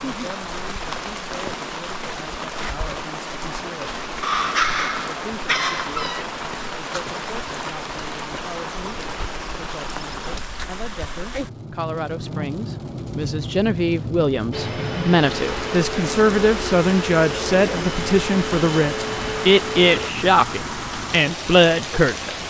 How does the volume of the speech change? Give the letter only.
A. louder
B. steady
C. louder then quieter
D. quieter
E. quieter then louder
A.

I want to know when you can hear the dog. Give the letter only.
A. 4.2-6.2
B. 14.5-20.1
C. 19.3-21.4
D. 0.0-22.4
A.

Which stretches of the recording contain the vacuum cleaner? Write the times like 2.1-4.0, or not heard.
14.5-20.1.